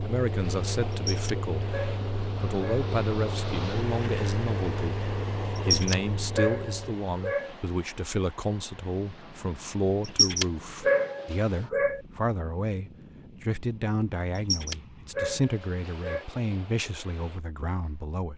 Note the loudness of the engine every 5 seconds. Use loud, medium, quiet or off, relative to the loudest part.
loud, loud, off, off.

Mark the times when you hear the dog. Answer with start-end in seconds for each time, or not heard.
0.9-2.9, 5.5-7.5, 10.1-12.0, 14.3-16.2.